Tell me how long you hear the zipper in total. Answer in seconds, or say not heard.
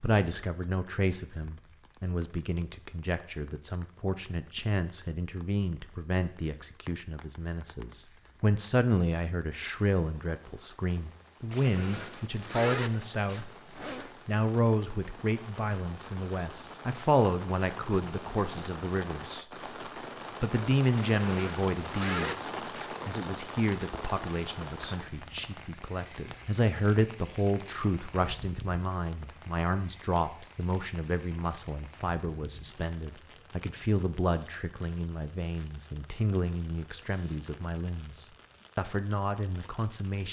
5 s.